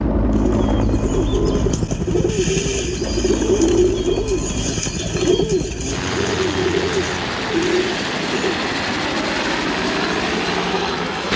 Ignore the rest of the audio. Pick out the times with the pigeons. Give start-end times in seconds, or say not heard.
0.2-8.8.